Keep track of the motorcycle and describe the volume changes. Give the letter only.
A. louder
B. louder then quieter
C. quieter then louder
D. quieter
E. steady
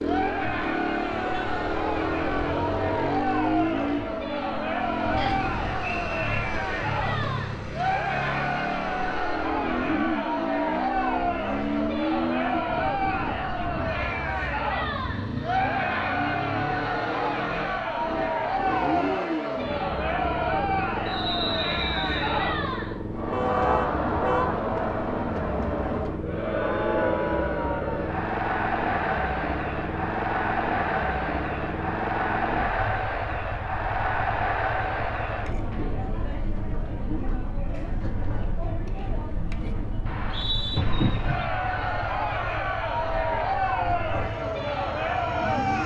D.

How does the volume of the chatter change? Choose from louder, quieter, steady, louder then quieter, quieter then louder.
steady.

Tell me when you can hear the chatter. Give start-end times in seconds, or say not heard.
0.0-45.8.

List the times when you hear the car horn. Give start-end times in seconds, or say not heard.
1.1-3.0, 23.3-24.5, 40.8-41.5.